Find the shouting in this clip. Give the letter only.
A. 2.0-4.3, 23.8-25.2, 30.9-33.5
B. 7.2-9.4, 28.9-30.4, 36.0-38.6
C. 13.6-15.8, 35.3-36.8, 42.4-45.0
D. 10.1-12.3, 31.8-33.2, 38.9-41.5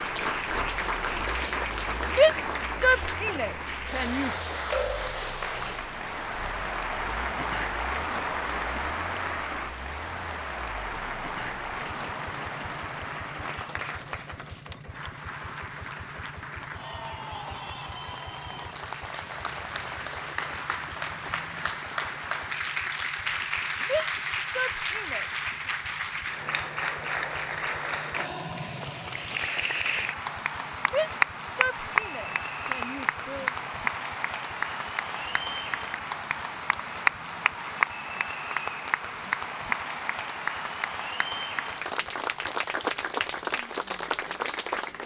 A.